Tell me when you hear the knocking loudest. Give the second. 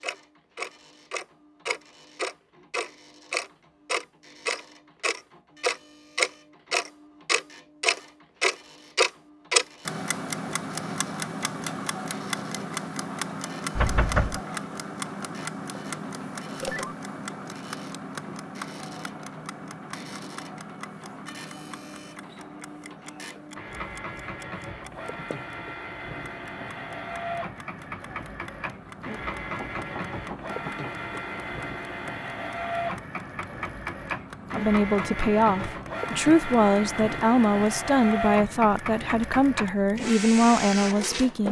14 s.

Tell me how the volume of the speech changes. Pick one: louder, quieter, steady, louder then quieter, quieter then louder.
steady.